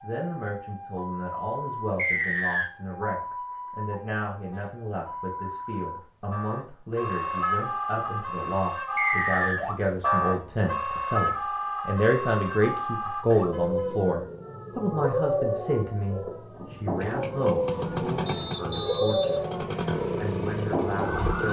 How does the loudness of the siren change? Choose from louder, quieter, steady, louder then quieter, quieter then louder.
louder.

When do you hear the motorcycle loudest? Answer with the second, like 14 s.
20 s.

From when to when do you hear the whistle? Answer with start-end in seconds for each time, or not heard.
1.9-2.7, 8.9-9.6, 18.2-19.4.